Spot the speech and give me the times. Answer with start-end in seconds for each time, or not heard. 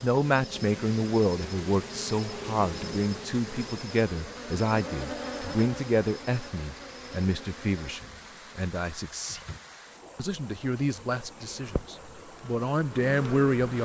0.0-9.4, 10.2-13.8.